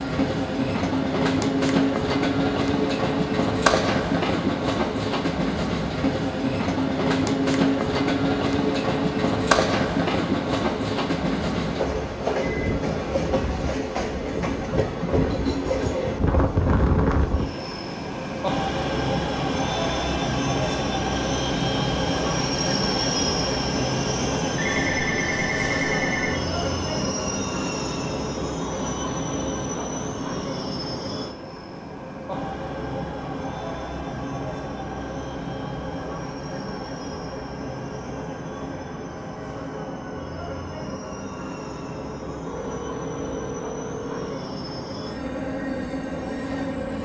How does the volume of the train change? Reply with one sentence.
The loudness of the train goes down.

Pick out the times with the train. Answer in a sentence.
You can hear the train from 0.0 to 46.9 s.